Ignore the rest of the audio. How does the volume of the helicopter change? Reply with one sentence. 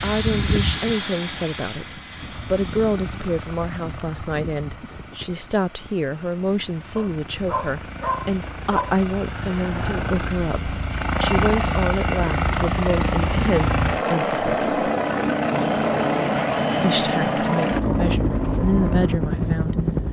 The loudness of the helicopter goes down, then up.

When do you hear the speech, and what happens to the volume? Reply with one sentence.
You can hear the speech from 0.0 to 14.9 s, at a steady volume; and briefly from 16.8 to 19.8 s.